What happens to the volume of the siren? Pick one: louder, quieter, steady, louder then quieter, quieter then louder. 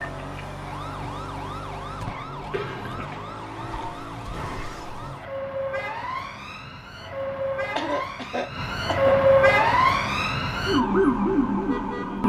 louder.